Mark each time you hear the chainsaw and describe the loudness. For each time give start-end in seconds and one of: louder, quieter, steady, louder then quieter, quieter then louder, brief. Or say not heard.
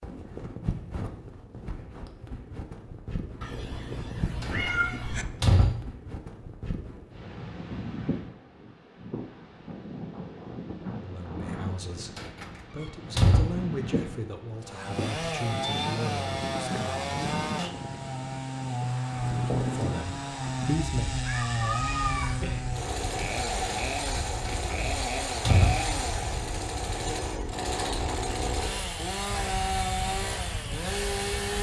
14.6-31.5 steady.